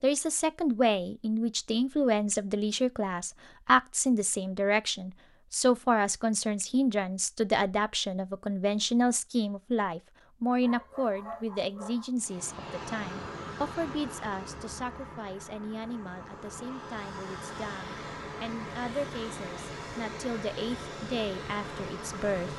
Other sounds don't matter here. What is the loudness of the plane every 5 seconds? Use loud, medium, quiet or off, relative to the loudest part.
off, off, loud, loud, loud.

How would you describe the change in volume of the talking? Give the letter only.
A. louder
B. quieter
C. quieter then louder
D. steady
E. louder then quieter
B.